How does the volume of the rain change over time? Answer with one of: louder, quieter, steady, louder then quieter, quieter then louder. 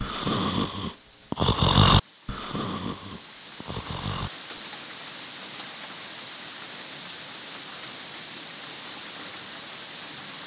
louder.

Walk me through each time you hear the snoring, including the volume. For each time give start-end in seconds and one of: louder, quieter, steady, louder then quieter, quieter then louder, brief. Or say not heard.
0.0-4.6 louder then quieter.